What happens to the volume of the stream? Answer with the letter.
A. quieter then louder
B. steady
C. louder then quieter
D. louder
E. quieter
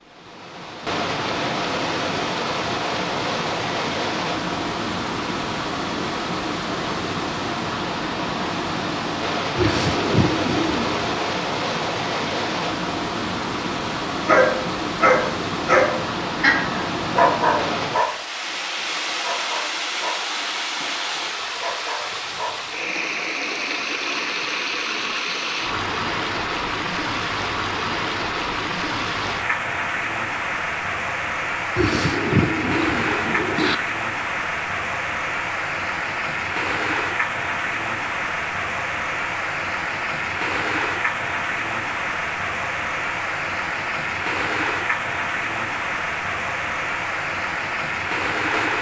B.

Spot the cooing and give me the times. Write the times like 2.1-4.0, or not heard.
9.6-11.3, 31.8-33.8.